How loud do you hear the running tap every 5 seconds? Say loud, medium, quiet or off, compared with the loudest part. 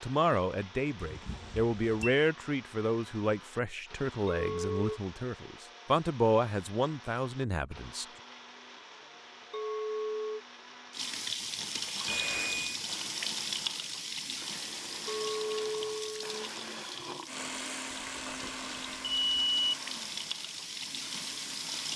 off, off, loud, medium, loud.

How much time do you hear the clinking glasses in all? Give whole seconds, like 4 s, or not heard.
3 s.